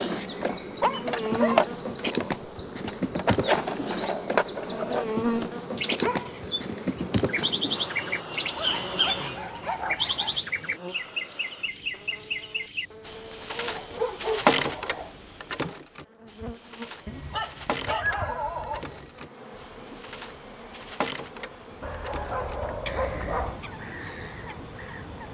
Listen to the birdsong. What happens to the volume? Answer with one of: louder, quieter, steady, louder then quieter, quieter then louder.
quieter.